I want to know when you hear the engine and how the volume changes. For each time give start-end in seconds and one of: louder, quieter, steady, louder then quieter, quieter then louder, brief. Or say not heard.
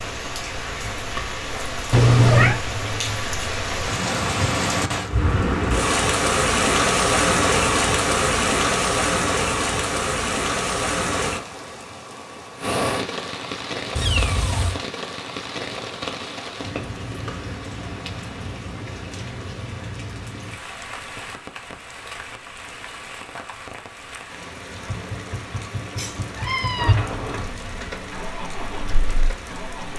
24.7-29.9 louder then quieter.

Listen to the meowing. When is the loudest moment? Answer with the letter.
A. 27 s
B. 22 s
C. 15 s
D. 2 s
D.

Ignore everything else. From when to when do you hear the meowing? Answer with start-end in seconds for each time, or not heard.
1.9-2.6, 13.9-14.8, 25.9-26.9.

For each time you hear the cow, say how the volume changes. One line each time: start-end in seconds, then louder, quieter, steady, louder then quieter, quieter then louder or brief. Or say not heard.
not heard.